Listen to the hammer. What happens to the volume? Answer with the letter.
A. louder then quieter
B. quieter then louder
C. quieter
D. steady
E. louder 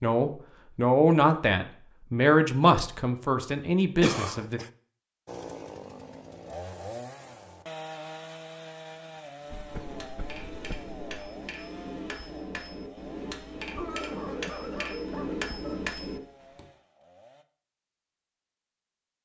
E.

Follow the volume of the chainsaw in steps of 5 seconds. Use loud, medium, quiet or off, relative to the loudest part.
off, loud, medium, quiet.